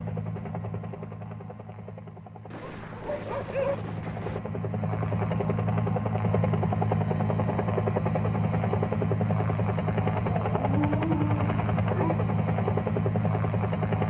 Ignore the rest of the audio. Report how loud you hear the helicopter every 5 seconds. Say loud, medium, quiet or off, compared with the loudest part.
medium, loud, loud.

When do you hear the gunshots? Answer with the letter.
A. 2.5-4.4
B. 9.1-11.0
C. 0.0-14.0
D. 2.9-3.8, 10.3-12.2
A.